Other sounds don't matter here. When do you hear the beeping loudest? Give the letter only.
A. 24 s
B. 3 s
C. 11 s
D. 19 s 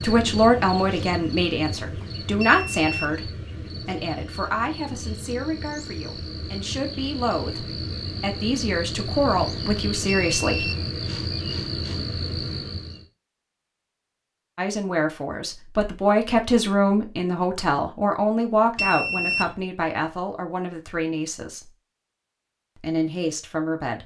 D.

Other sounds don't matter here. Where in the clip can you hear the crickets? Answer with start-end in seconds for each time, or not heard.
0.0-13.1.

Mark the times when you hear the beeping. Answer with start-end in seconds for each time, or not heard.
2.4-3.1, 10.3-10.8, 18.8-19.6.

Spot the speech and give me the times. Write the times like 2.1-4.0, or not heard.
0.0-10.7, 14.6-21.7, 22.8-24.0.